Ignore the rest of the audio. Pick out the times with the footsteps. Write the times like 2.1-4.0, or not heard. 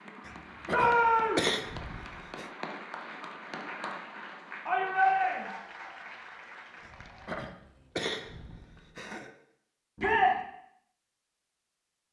not heard.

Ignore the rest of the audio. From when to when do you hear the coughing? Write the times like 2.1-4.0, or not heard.
0.2-2.5, 6.8-9.3.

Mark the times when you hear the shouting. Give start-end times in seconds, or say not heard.
0.7-1.5, 4.7-5.5, 9.9-10.4.